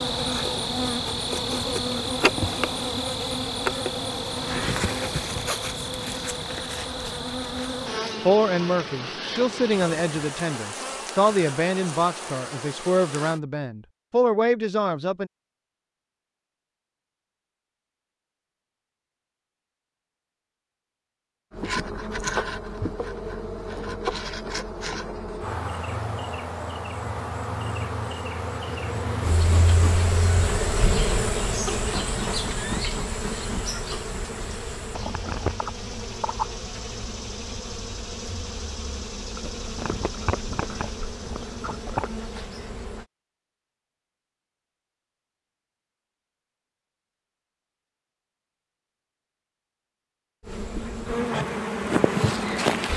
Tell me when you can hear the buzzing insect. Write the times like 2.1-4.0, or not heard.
0.0-13.4, 21.5-43.0, 50.5-52.9.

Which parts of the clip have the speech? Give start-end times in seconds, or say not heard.
8.2-15.3.